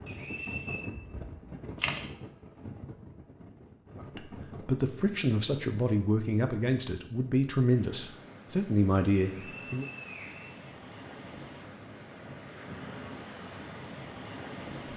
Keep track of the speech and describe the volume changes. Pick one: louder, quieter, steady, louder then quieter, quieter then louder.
steady.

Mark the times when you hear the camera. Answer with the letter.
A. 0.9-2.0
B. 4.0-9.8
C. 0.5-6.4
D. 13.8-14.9
A.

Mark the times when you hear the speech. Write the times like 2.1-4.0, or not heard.
4.0-9.8.